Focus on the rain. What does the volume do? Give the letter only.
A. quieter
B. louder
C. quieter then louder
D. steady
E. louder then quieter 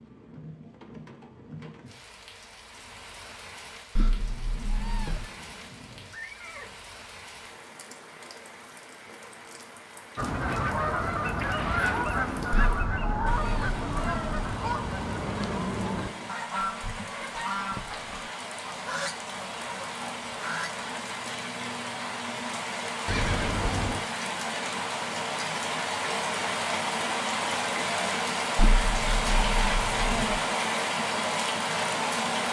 B.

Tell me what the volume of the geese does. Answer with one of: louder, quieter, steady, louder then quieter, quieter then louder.
quieter.